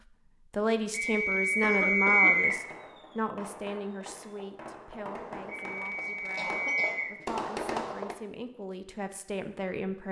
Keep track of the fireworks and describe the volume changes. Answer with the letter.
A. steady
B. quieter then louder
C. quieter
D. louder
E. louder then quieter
D.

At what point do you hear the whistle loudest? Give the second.
2 s.